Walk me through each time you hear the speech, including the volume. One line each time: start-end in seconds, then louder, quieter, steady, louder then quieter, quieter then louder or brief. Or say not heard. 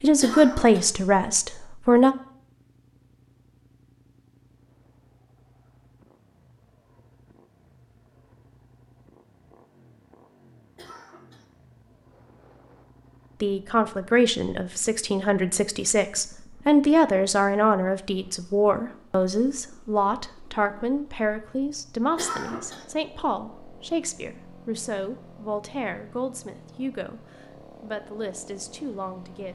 0.0-2.1 brief
13.4-29.5 quieter.